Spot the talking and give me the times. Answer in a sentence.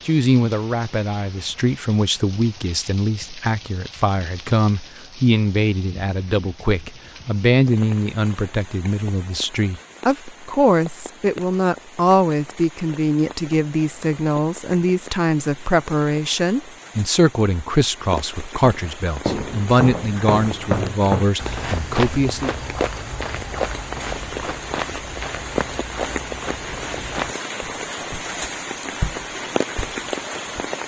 The talking can be heard from 0.1 to 22.6 s.